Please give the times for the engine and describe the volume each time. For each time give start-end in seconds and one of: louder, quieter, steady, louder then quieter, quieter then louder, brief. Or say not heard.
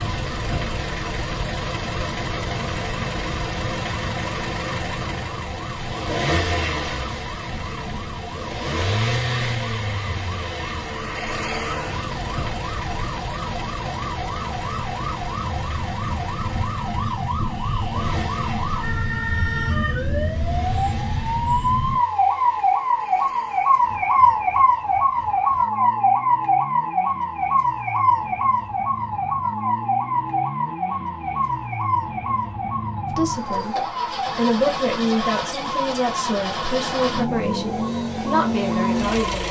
0.0-39.4 quieter then louder.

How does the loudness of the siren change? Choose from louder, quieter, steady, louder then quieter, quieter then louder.
louder then quieter.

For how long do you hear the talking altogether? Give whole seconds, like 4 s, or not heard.
6 s.